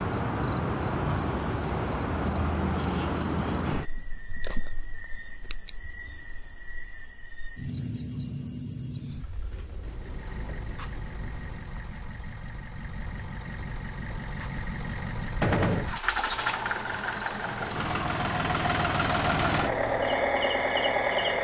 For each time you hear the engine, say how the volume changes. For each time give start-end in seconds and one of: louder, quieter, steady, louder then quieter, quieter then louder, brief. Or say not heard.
9.8-21.3 louder.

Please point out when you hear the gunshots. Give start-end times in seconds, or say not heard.
15.4-15.9.